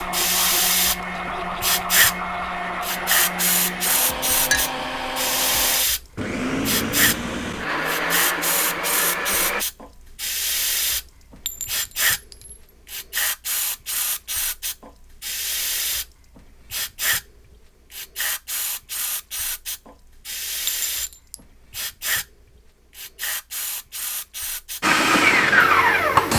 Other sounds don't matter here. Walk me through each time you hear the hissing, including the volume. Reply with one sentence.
The hissing can be heard from 0.0 to 26.3 s, getting quieter.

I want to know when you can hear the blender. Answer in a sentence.
The blender can be heard from 0.0 to 9.7 s and from 24.8 to 26.3 s.